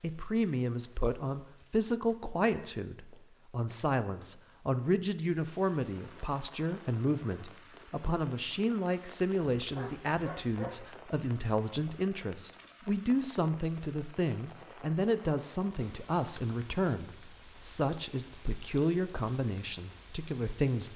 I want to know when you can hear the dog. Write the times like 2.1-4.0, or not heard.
9.6-10.8.